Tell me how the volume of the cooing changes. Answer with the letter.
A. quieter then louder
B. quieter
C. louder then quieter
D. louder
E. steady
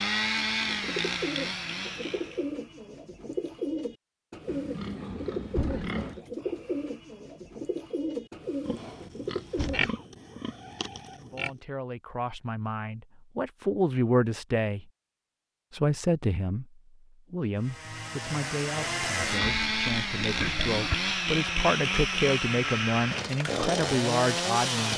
E.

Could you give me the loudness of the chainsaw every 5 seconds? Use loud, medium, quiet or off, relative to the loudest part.
loud, off, off, loud, loud.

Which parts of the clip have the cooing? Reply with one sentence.
The cooing can be heard from 0.7 to 9.9 s.